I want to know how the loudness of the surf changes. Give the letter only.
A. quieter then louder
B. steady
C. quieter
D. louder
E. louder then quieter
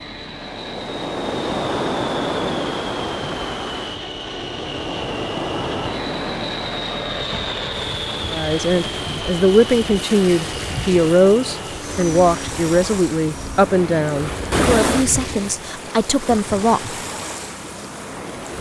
A.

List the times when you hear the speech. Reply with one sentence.
You can hear the speech from 8.3 to 16.9 s.